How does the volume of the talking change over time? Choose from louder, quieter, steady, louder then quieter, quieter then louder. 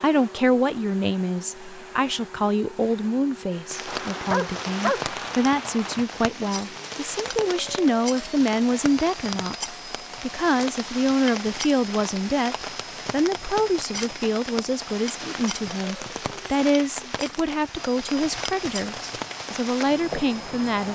steady.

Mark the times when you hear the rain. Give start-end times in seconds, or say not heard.
3.7-20.8.